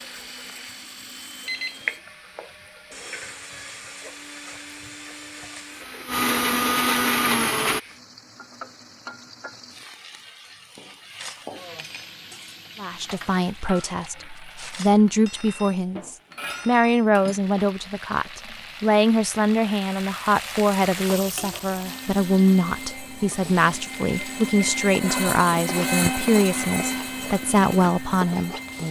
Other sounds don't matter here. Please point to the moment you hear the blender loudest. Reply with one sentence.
The loudest moment of the blender is at 7 seconds.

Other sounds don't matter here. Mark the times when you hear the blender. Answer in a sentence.
You can hear the blender from 0.0 to 7.8 s and from 21.8 to 28.8 s.